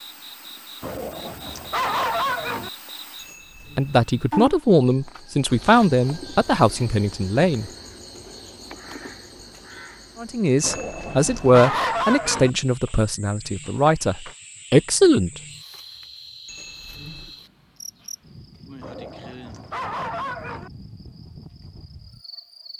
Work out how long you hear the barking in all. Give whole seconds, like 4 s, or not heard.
6 s.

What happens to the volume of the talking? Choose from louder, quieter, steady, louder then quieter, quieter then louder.
steady.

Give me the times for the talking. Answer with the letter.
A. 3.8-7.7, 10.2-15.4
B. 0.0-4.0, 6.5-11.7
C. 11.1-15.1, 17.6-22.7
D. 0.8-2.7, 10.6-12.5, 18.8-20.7
A.